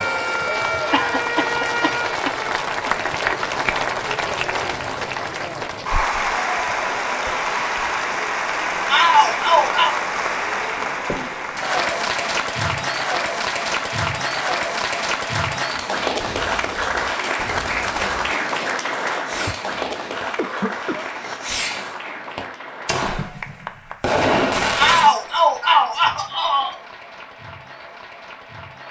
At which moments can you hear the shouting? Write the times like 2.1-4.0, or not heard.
8.8-9.9, 24.8-26.8.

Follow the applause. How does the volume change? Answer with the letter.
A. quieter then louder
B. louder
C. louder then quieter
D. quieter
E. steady
D.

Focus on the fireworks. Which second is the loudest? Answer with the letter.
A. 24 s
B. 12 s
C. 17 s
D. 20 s
A.